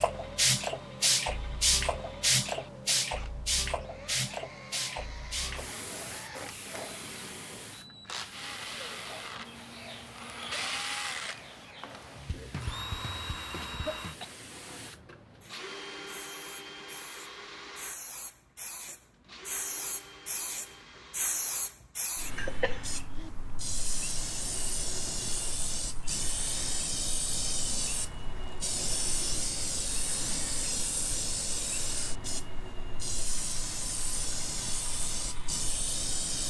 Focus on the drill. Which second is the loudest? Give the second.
11 s.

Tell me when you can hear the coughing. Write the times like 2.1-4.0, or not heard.
13.6-14.3, 22.4-23.3.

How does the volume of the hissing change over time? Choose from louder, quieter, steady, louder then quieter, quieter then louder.
quieter then louder.